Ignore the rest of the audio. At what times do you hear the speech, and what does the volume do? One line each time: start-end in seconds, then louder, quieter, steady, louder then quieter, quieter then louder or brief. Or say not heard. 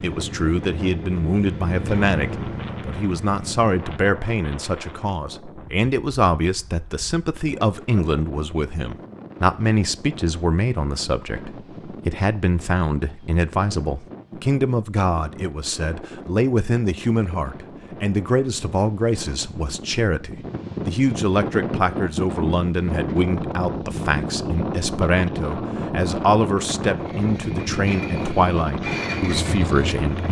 0.0-30.2 steady.